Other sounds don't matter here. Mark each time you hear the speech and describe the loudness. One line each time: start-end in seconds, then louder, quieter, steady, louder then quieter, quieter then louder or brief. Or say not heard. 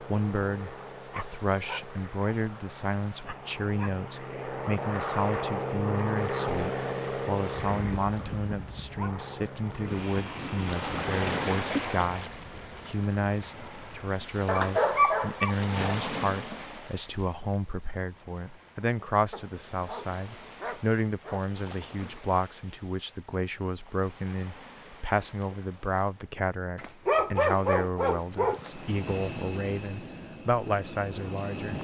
0.0-31.7 steady.